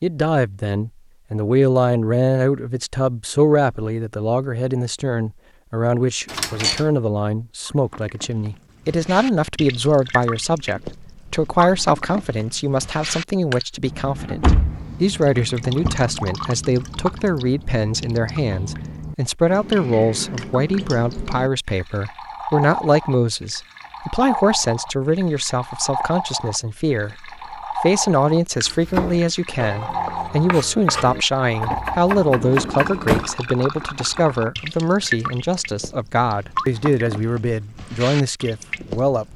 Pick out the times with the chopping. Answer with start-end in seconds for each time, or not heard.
28.6-34.5.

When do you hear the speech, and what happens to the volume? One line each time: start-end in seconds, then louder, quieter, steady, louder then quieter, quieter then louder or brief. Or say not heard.
0.0-39.3 steady.